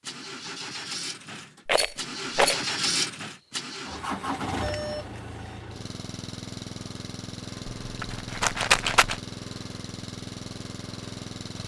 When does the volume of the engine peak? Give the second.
3 s.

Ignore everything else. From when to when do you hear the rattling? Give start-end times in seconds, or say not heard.
1.6-2.6, 7.7-9.2.